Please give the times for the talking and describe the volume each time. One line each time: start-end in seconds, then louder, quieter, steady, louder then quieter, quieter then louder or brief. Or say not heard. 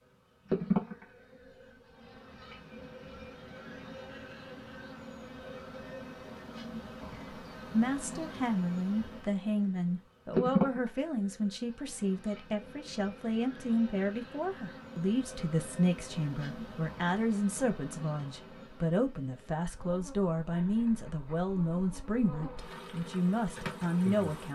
7.7-24.4 steady.